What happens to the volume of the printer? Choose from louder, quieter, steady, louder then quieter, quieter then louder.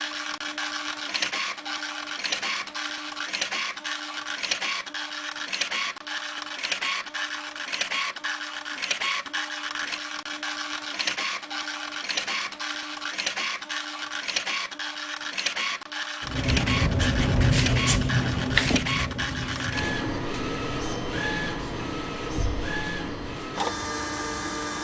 steady.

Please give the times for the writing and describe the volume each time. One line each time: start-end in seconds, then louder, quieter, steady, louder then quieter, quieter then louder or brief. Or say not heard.
16.2-23.6 quieter.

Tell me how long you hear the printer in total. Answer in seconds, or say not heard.
25 s.